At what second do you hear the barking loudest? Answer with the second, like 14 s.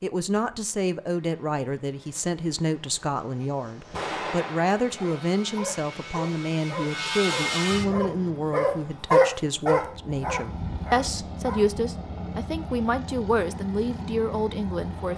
9 s.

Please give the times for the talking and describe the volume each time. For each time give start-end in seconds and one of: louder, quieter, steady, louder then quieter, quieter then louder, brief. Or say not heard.
0.0-15.1 steady.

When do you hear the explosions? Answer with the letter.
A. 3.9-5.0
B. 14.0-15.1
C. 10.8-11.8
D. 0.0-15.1
A.